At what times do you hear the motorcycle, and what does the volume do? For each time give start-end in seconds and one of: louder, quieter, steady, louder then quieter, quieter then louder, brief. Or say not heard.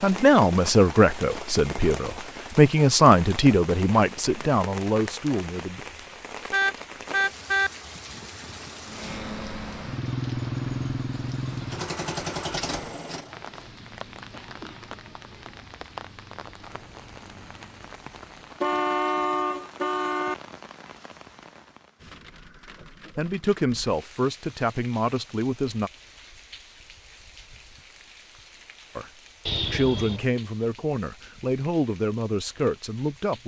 8.8-17.9 quieter.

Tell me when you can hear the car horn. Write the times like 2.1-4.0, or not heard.
6.5-7.7, 18.6-20.4, 29.4-30.2.